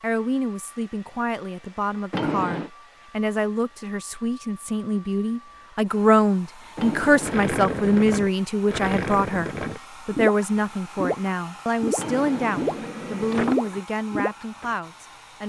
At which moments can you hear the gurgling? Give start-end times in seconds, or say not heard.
7.2-14.7.